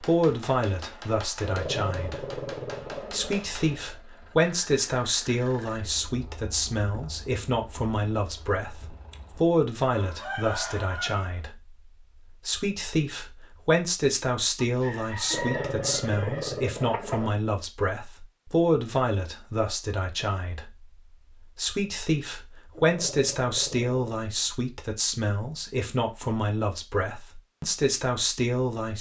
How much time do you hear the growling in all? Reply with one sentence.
You can hear the growling for 5 seconds altogether.